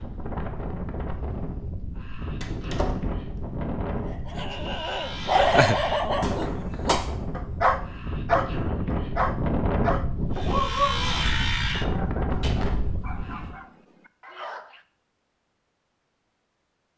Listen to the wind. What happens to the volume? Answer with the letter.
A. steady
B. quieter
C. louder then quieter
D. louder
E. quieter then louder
D.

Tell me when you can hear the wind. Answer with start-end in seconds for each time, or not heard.
0.0-13.6.